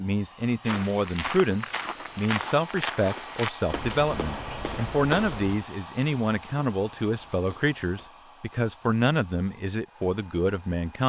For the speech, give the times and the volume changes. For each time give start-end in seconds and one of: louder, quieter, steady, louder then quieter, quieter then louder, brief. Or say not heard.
0.0-11.0 steady.